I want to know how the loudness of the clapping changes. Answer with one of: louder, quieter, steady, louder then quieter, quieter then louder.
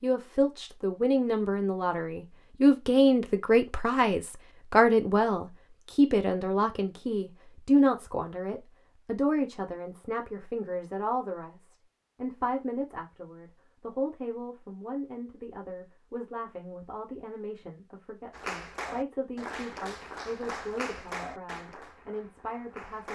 quieter.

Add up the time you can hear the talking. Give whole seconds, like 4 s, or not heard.
23 s.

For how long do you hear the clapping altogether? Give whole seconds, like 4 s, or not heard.
5 s.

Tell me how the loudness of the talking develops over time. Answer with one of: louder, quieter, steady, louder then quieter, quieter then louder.
quieter.